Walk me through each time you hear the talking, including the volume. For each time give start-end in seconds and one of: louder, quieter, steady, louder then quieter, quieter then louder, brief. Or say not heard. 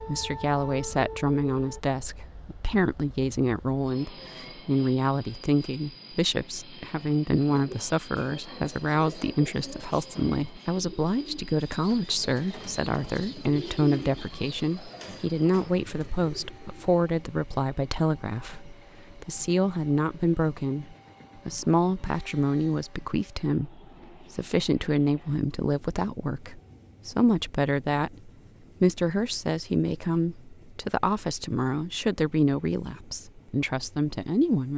0.1-34.7 steady.